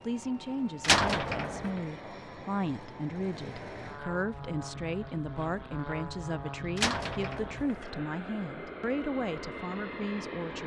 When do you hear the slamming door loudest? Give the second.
1 s.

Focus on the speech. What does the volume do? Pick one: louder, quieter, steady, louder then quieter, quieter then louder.
steady.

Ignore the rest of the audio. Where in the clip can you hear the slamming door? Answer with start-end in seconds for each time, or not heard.
0.8-1.8, 6.8-8.0.